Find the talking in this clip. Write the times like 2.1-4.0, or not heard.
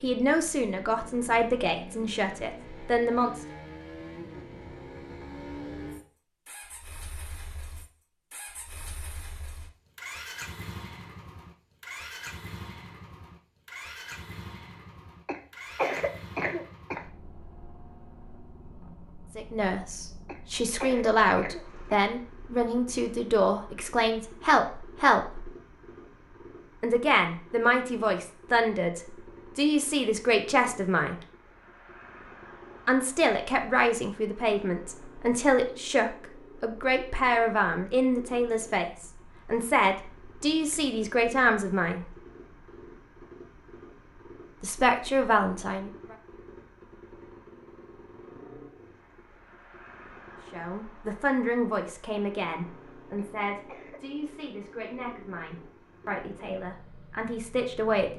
0.0-3.4, 19.4-25.5, 26.8-31.1, 32.9-42.0, 44.6-46.1, 50.5-58.1.